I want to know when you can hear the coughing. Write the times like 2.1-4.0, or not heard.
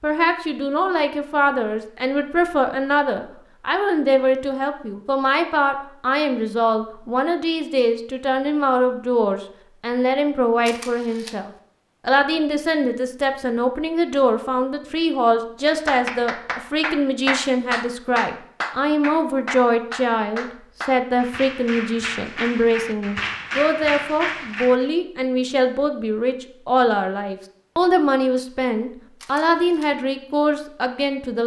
not heard.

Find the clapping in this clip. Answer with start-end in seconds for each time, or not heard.
15.7-24.9.